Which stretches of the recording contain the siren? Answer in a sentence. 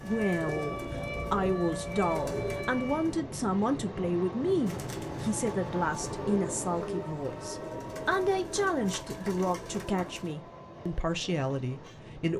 You can hear the siren from 0.0 to 3.1 s.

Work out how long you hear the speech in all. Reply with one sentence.
The speech can be heard for 12 seconds in total.